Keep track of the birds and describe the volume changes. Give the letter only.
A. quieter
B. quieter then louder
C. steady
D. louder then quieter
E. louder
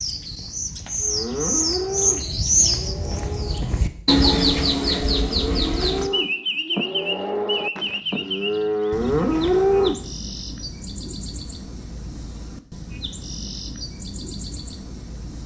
A.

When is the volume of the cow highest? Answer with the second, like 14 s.
10 s.